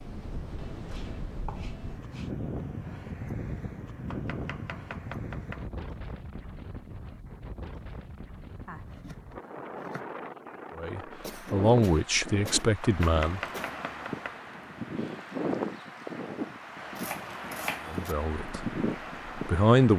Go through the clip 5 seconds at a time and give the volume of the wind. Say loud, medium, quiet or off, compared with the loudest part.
loud, medium, loud, loud.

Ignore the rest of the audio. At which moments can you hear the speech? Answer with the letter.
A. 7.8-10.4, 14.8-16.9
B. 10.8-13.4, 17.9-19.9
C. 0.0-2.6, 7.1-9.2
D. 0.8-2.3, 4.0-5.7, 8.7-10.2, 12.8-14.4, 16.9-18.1
B.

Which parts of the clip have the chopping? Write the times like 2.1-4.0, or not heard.
0.8-2.3, 4.0-5.7, 8.7-10.2, 12.8-14.4, 16.9-18.1.